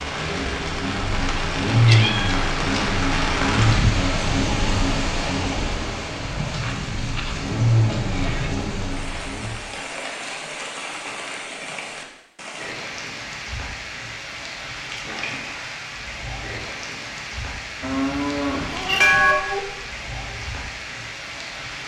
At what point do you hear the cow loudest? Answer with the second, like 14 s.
19 s.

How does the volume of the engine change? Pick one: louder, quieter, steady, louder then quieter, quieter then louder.
quieter then louder.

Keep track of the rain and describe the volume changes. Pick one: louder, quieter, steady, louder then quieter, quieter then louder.
quieter.